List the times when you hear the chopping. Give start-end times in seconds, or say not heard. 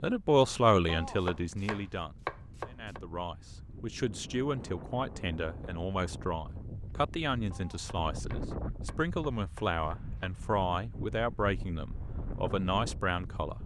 0.8-3.0, 7.5-10.3.